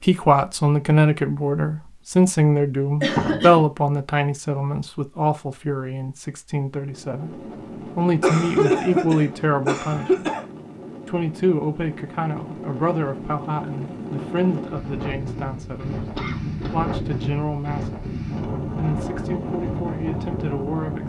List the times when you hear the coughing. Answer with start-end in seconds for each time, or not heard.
3.0-3.6, 8.2-10.4, 16.1-16.7.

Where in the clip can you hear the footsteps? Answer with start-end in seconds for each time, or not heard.
not heard.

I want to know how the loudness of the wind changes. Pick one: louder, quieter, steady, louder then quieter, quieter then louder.
louder.